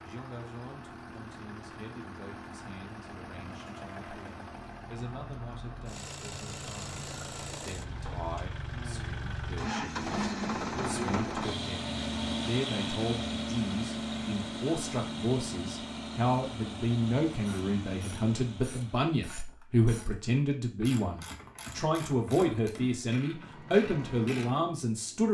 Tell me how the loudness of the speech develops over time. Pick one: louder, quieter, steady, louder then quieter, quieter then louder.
louder.